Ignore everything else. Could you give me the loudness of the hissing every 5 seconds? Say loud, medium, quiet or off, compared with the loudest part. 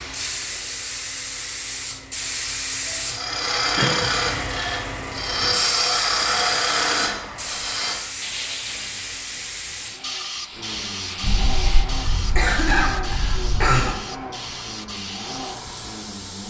loud, loud, loud, medium.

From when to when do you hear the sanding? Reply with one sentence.
You can hear the sanding from 3.0 to 12.4 s.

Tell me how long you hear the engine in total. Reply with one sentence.
The engine can be heard for 8 seconds in total.